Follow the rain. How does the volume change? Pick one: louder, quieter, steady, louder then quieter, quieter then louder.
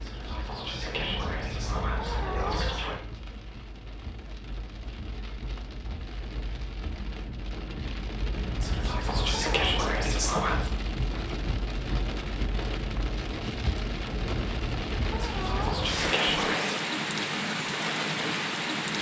louder.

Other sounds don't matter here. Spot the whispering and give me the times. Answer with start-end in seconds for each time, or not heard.
0.0-3.0, 8.6-10.7, 15.2-16.8.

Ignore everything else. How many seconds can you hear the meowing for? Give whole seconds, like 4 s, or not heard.
5 s.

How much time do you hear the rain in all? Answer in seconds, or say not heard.
19 s.